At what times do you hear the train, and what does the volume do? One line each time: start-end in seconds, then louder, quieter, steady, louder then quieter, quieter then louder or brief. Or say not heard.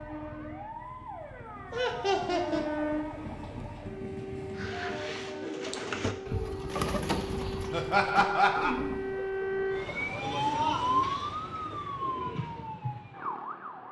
0.0-5.5 louder then quieter.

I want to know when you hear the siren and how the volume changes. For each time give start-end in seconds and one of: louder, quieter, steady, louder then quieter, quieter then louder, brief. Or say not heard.
0.0-13.8 louder.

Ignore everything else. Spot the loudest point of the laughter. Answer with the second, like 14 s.
8 s.